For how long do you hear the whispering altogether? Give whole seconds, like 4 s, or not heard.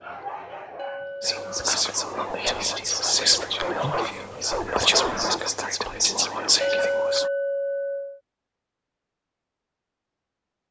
6 s.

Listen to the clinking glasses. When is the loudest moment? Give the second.
7 s.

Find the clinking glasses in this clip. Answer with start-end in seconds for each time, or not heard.
0.8-1.6, 6.6-8.2.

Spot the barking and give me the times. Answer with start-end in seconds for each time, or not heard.
0.0-5.5.